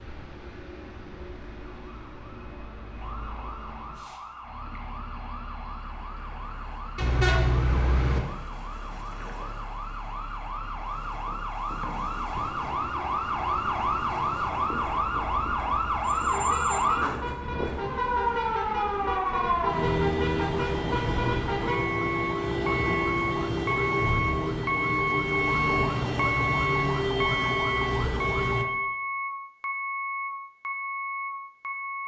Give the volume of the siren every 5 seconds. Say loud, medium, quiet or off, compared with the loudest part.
quiet, quiet, loud, loud, loud, loud, off.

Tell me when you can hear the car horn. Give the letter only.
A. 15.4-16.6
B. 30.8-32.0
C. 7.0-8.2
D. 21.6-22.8
C.